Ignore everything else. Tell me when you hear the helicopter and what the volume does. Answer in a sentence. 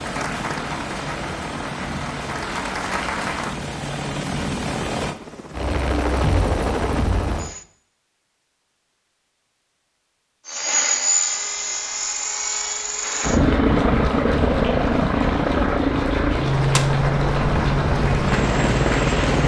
You can hear the helicopter from 0.0 to 7.7 s, getting louder; and from 10.4 to 19.4 s, at a steady volume.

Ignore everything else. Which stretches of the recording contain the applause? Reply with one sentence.
The applause can be heard from 0.0 to 3.5 s and from 13.0 to 19.4 s.